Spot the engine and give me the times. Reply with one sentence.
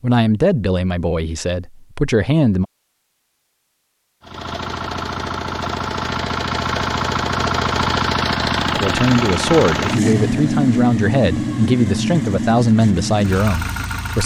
The engine can be heard from 4.2 to 14.2 s.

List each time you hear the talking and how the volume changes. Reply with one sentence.
You can hear the talking briefly from 0.0 to 2.6 s; and from 8.7 to 14.2 s, at a steady volume.